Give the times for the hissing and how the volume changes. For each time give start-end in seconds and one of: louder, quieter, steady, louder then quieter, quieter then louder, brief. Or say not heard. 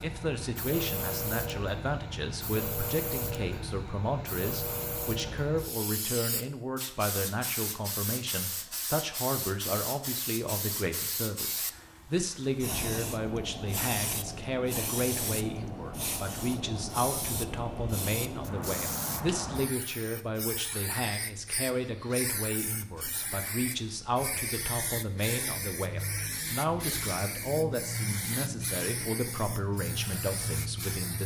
0.0-31.2 steady.